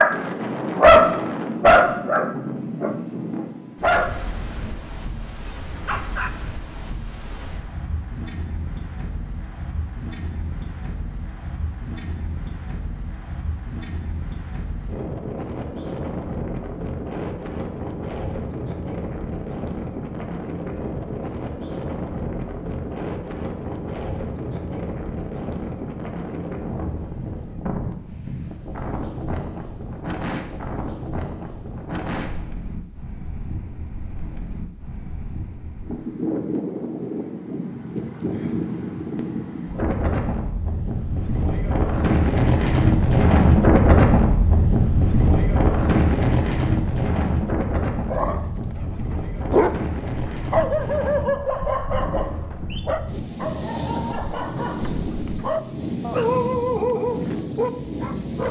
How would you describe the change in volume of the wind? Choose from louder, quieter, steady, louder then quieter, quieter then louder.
louder then quieter.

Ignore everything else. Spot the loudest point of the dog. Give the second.
1 s.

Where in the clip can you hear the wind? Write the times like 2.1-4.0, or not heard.
0.0-58.4.